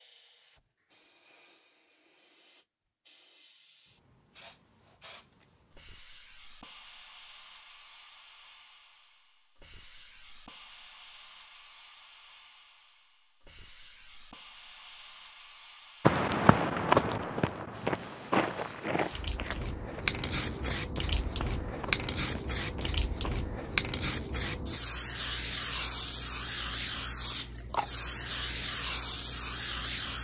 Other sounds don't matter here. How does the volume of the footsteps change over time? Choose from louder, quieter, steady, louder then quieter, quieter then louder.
quieter.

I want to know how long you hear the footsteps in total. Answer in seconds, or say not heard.
7 s.